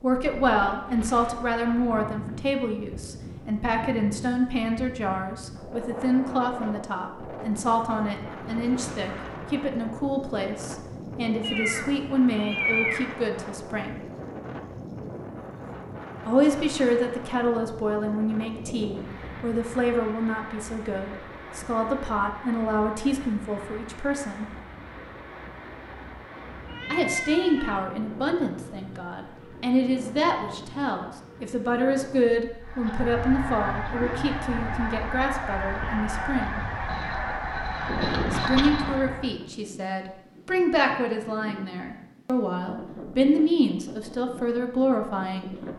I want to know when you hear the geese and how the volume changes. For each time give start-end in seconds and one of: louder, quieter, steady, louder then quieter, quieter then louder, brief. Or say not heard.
32.6-39.3 steady.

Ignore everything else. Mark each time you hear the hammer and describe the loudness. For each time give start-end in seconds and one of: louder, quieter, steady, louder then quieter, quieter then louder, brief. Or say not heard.
not heard.